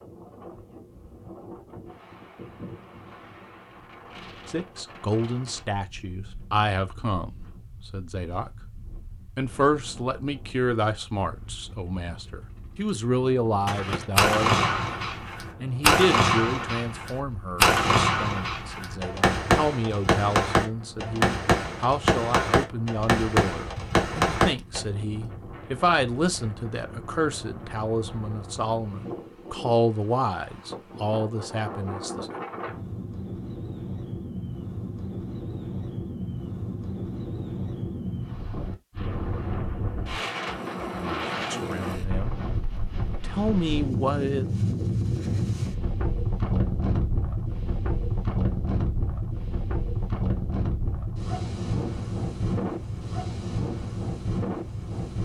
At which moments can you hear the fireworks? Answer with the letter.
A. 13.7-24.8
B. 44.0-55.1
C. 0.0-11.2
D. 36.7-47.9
A.